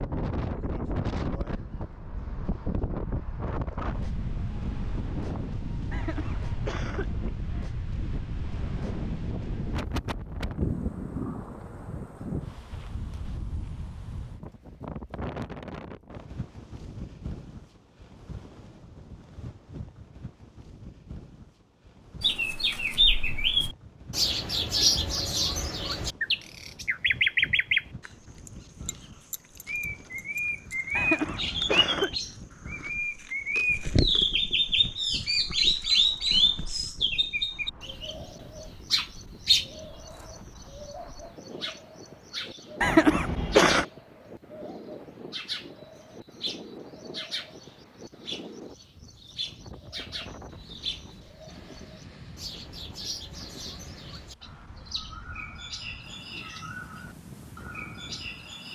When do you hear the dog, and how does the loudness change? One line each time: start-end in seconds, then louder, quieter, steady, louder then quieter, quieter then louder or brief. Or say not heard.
not heard.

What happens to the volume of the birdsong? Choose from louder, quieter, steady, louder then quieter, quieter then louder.
quieter.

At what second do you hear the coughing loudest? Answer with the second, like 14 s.
43 s.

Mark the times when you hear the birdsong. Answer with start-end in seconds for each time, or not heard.
22.2-28.1, 28.9-58.6.